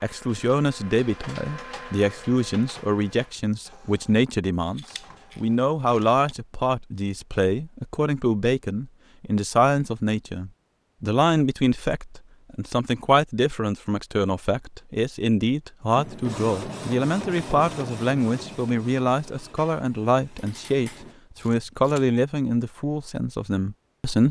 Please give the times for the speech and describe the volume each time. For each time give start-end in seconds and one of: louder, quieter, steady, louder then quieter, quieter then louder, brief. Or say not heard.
0.0-24.2 steady.